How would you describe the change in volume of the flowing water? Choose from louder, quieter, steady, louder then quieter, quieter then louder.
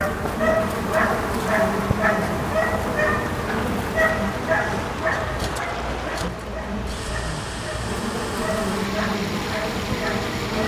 steady.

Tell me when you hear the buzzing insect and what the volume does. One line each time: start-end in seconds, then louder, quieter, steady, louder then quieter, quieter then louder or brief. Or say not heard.
0.0-10.6 quieter then louder.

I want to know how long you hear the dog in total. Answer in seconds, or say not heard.
10 s.